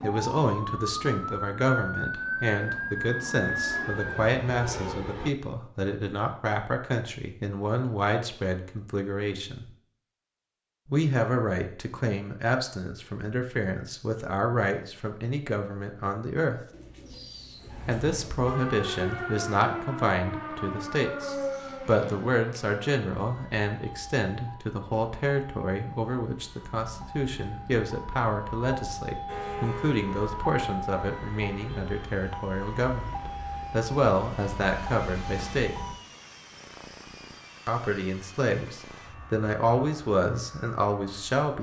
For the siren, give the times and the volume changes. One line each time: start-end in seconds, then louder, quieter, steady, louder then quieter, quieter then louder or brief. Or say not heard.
0.0-4.2 steady
18.4-36.0 quieter then louder.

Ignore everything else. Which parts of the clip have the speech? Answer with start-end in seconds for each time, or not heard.
0.0-9.7, 10.8-16.6, 17.9-35.8, 37.6-41.5.